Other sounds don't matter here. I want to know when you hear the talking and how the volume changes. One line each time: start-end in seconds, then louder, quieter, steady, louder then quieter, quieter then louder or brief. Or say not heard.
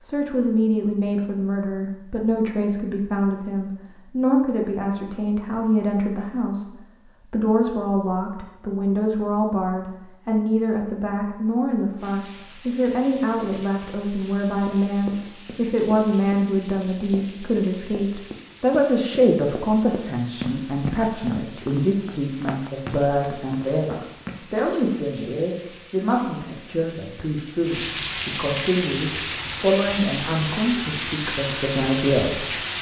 0.0-32.6 steady.